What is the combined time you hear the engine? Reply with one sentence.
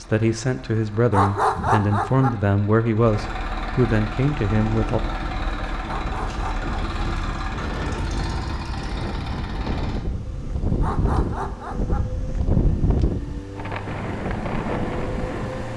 The engine can be heard for 16 seconds in total.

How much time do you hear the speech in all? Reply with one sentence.
You can hear the speech for 5 seconds altogether.